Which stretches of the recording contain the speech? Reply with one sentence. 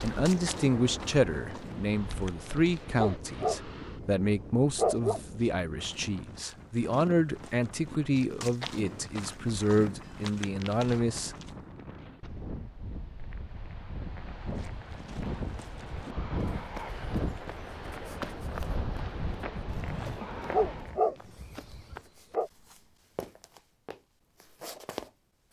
The speech can be heard from 0.0 to 11.3 s.